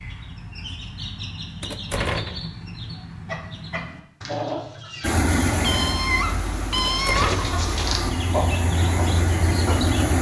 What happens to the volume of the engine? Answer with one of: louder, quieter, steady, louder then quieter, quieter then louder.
quieter then louder.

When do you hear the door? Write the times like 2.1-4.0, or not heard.
1.6-2.5, 6.8-7.5.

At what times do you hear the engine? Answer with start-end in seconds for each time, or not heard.
5.0-10.1.